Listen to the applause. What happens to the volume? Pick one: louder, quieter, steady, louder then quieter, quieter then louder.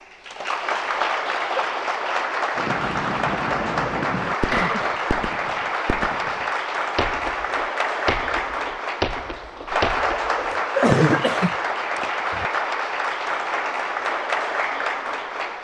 steady.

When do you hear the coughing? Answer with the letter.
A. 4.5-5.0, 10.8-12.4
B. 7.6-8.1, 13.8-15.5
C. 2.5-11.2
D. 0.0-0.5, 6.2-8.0
A.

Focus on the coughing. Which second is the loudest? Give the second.
11 s.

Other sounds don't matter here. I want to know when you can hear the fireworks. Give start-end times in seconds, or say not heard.
2.5-11.2.